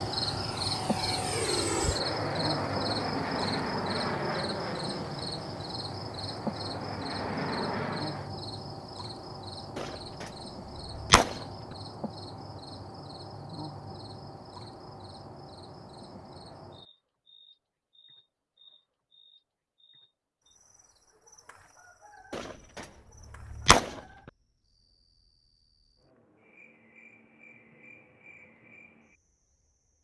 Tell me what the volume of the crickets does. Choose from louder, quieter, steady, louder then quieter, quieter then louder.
quieter.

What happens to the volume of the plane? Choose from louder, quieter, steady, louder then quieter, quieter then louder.
quieter then louder.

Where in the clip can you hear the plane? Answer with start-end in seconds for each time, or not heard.
0.0-8.3.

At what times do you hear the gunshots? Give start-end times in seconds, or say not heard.
9.8-11.4, 22.3-24.0.